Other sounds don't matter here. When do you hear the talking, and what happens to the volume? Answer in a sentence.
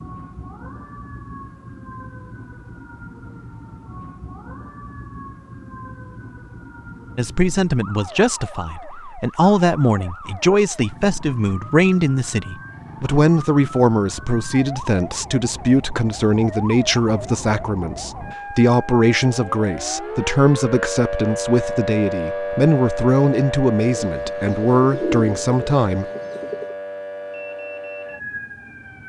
The talking can be heard from 7.2 to 26.1 s, at a steady volume.